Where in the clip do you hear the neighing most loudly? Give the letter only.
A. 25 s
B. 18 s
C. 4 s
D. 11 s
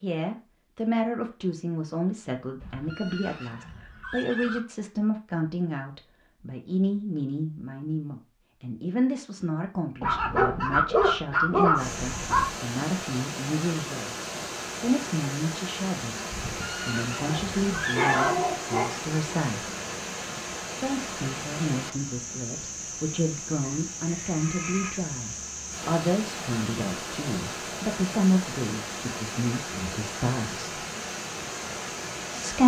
B.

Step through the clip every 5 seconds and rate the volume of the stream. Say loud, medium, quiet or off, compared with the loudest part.
off, off, loud, loud, loud, loud, loud.